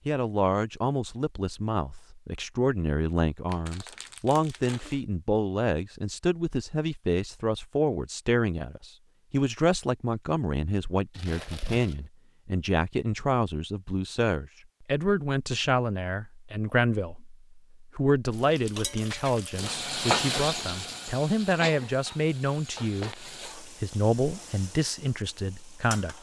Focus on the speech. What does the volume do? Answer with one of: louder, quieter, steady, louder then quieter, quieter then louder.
steady.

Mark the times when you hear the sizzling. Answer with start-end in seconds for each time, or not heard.
18.3-26.1.